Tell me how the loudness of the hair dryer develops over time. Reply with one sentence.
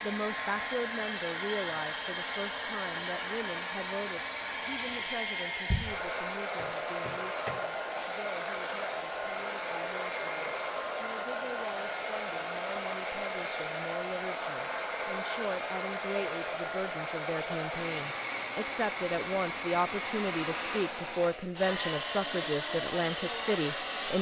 The volume of the hair dryer stays about the same.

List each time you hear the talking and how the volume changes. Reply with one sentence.
The talking can be heard from 0.0 to 24.1 s, getting quieter then louder.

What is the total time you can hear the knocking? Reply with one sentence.
You can hear the knocking for 2 seconds altogether.